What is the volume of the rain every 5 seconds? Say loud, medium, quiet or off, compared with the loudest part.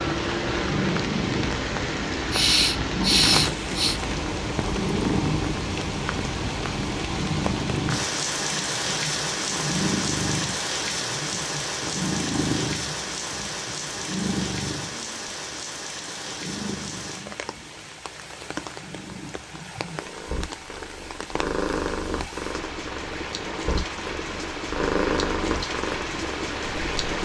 loud, loud, loud, medium, medium, loud.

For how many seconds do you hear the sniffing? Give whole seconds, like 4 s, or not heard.
2 s.